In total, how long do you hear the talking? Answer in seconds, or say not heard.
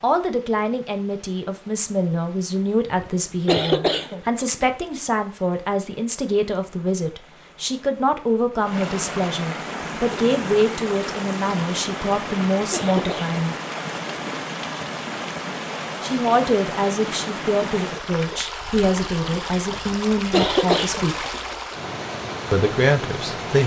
20 s.